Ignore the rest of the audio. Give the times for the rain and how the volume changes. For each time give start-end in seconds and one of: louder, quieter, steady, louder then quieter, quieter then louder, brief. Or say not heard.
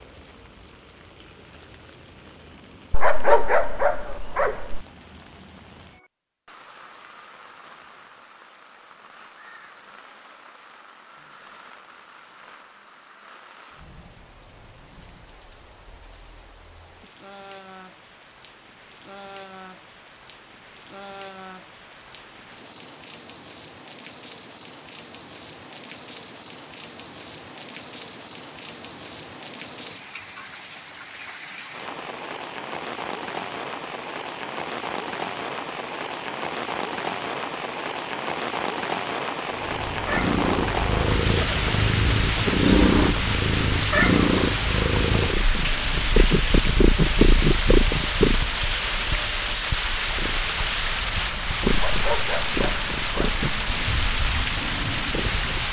0.0-55.6 louder.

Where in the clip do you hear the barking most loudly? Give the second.
3 s.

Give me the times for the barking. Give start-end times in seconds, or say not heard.
2.9-4.8, 51.7-53.4.